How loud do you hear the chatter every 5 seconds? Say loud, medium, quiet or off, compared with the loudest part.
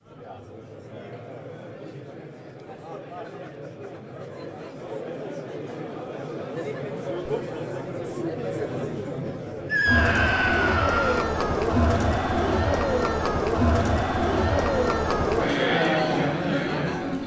quiet, medium, loud, loud.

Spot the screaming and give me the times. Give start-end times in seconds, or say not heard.
9.7-11.2.